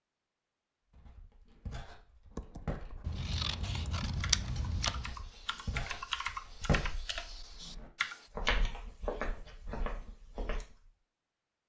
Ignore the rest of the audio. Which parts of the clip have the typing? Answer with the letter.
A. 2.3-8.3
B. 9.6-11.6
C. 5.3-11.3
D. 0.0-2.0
A.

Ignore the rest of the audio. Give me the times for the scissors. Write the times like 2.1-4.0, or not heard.
3.0-5.0.